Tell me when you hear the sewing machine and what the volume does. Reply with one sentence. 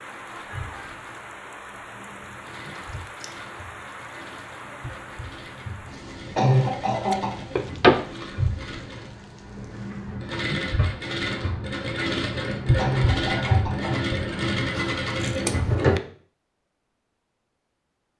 The sewing machine can be heard from 0.0 to 16.0 s, getting louder.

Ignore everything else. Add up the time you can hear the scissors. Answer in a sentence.
The scissors can be heard for 3 seconds in total.